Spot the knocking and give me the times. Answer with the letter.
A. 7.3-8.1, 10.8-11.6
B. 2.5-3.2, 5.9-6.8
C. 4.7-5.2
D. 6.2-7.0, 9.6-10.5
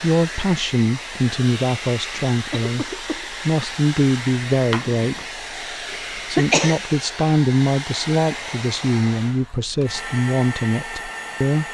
C.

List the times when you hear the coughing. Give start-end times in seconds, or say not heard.
2.5-3.2, 5.9-6.8.